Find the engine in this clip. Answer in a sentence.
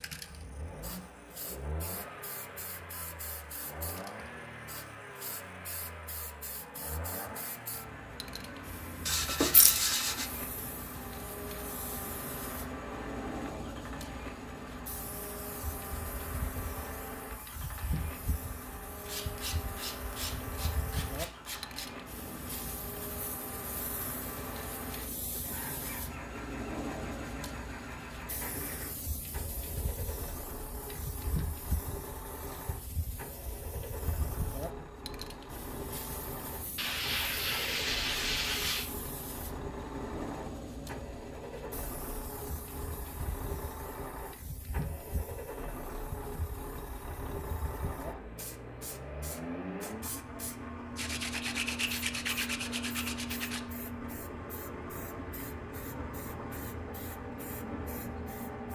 The engine can be heard from 0.0 to 58.7 s.